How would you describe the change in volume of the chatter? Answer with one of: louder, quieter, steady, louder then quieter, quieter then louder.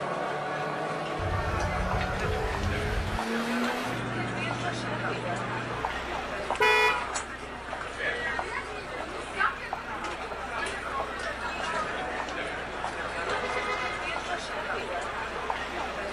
steady.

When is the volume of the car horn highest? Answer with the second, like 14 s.
7 s.